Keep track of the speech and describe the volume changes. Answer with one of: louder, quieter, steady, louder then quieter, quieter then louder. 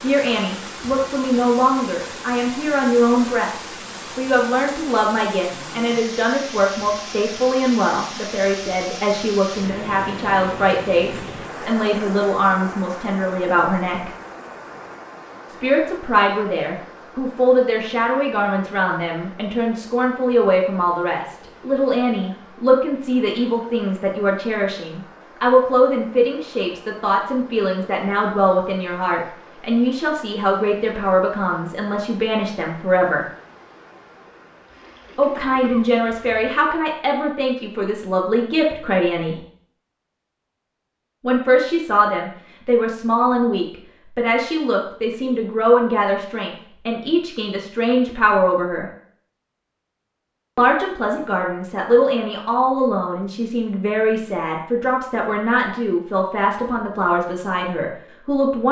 steady.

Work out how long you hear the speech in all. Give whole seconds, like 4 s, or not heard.
52 s.